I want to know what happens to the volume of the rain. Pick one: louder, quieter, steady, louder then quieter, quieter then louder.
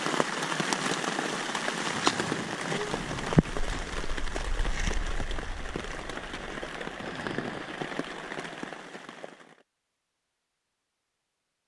quieter.